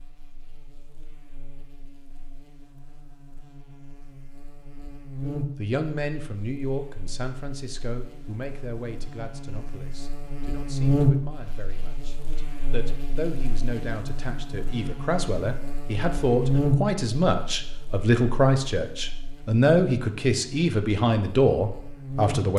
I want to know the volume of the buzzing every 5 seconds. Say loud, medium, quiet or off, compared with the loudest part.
quiet, medium, loud, loud, medium.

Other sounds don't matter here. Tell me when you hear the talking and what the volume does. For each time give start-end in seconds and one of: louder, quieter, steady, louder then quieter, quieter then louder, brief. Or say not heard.
5.3-22.5 quieter then louder.